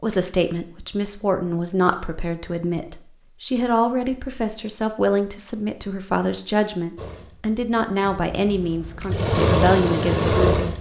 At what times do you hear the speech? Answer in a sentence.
The speech can be heard from 0.0 to 10.7 s.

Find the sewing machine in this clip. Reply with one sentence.
You can hear the sewing machine from 7.0 to 10.7 s.